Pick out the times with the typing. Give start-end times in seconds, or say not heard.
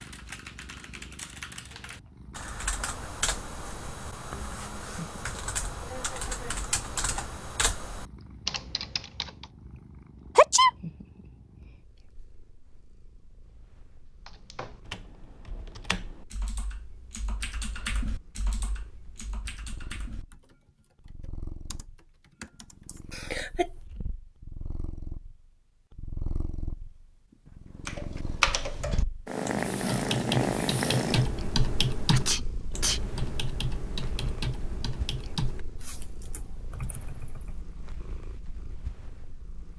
0.0-9.4, 14.2-23.0, 27.9-38.0.